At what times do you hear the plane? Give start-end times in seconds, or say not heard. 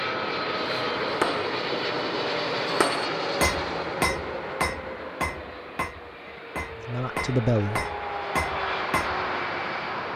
0.0-10.1.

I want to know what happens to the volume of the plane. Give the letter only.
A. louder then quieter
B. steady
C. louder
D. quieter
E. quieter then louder
E.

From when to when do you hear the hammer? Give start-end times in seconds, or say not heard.
0.5-9.2.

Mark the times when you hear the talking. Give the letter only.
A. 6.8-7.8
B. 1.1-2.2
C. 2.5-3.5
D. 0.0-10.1
A.